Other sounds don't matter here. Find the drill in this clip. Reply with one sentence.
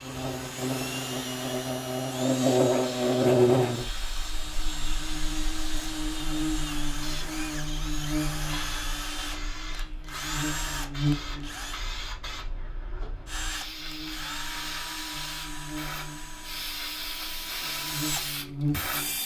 The drill can be heard from 0.0 to 11.8 s and from 13.2 to 19.2 s.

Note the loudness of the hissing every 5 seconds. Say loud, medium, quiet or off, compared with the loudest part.
medium, medium, medium, loud.